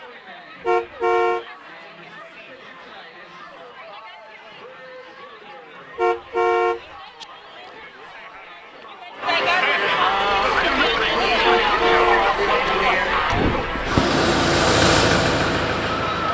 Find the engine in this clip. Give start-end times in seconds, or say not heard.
10.1-16.3.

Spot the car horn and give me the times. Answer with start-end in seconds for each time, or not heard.
0.6-1.4, 6.0-7.2, 11.4-12.7.